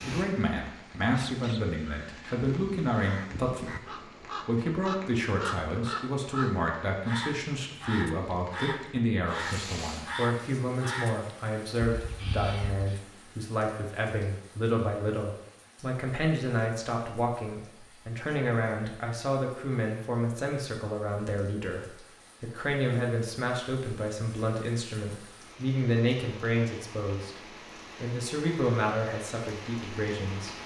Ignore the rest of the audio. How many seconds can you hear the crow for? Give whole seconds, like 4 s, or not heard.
12 s.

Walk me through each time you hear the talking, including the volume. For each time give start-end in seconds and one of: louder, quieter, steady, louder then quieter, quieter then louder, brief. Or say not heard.
0.0-30.6 steady.